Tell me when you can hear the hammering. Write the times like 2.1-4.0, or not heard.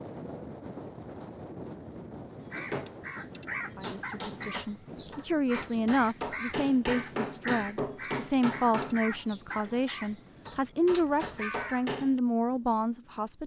2.5-9.8, 10.4-12.2.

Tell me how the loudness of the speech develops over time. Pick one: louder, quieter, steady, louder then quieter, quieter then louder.
steady.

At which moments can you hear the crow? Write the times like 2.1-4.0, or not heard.
2.4-11.8.